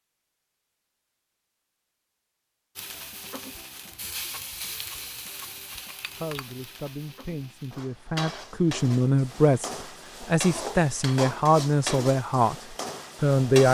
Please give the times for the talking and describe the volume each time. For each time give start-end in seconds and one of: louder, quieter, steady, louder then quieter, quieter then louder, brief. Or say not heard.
6.2-13.6 louder.